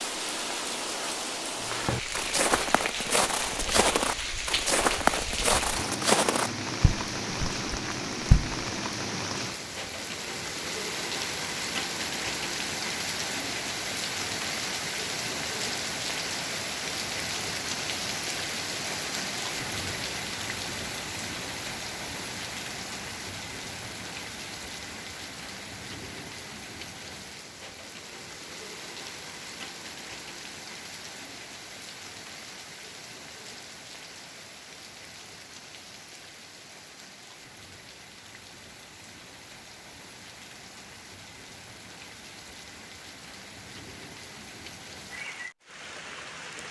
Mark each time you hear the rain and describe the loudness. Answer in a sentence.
You can hear the rain from 0.0 to 46.6 s, getting quieter.